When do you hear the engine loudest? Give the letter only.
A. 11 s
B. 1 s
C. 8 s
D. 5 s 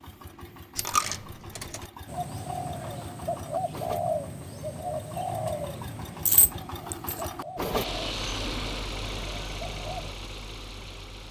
C.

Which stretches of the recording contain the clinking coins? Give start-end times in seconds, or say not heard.
0.8-1.9, 6.2-7.2.